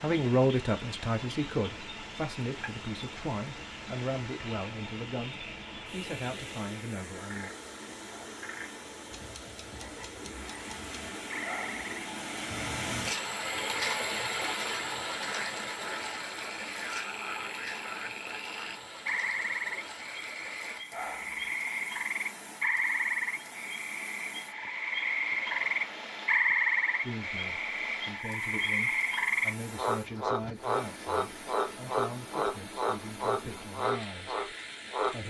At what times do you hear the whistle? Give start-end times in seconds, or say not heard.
not heard.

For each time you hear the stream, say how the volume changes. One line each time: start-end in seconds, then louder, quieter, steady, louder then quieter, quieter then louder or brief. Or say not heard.
0.0-35.2 louder then quieter.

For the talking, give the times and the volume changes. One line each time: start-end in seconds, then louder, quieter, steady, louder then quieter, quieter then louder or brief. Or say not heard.
0.0-7.5 quieter
27.0-35.2 steady.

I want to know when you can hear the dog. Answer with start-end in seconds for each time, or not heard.
11.4-11.8, 20.9-21.5.